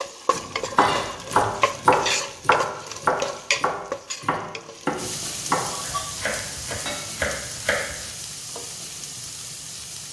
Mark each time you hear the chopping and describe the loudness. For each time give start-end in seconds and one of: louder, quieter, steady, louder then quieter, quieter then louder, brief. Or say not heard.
0.3-8.1 quieter.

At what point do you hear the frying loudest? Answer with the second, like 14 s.
2 s.